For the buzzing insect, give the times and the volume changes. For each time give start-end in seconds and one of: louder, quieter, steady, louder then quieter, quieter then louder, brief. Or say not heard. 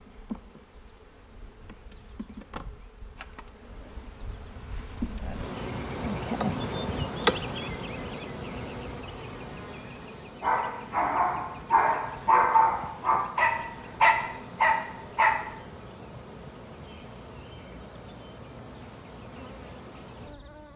0.0-20.7 louder then quieter.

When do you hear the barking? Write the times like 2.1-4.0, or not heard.
10.4-15.3.